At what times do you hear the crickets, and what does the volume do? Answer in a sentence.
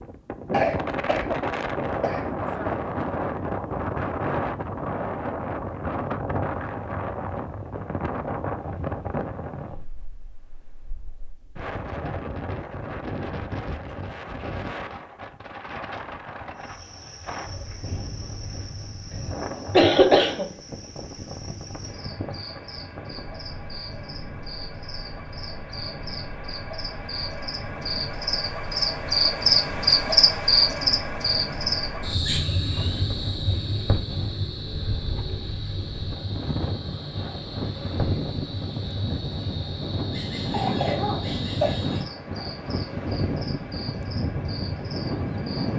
The crickets can be heard from 16.6 to 45.7 s, getting louder then quieter.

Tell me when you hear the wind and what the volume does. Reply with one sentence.
The wind can be heard from 0.0 to 45.7 s, getting quieter then louder.